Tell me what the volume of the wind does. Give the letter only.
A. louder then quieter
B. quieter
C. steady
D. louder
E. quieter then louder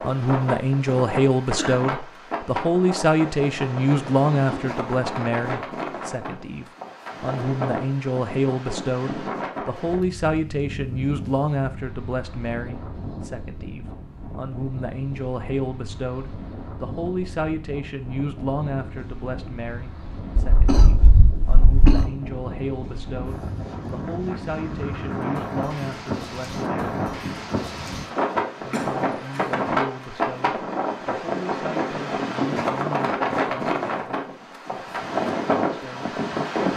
E.